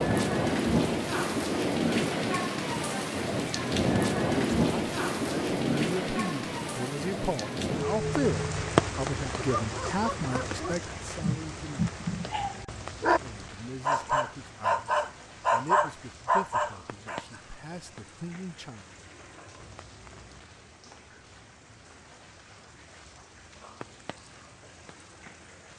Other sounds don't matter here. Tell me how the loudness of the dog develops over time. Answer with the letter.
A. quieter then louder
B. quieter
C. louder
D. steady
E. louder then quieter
C.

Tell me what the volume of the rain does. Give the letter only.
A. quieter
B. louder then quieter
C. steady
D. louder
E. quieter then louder
A.